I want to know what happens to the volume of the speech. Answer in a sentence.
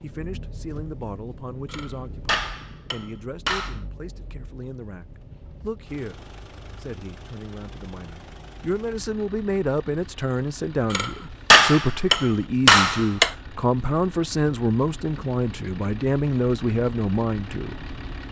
The volume of the speech goes up.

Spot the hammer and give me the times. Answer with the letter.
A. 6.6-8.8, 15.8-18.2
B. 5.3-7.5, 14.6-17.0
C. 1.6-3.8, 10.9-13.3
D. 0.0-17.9
C.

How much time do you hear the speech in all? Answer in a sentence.
You can hear the speech for 18 seconds altogether.